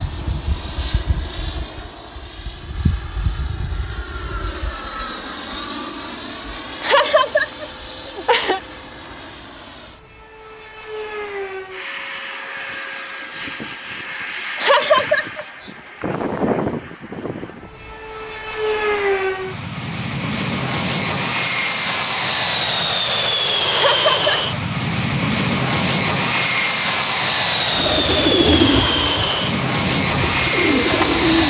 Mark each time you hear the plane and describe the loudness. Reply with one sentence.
You can hear the plane from 0.0 to 31.4 s, getting louder.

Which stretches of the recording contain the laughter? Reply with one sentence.
You can hear the laughter from 6.8 to 8.6 s, from 14.6 to 15.7 s and from 23.7 to 24.9 s.